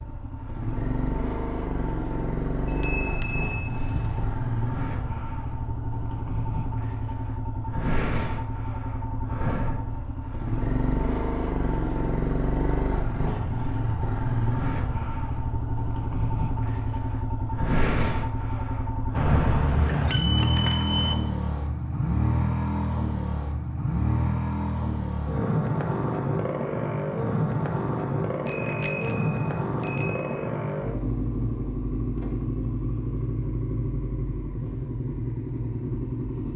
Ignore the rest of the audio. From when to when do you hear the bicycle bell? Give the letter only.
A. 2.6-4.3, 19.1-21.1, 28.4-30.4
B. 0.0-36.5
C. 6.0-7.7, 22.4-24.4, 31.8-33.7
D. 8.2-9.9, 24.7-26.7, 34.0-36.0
A.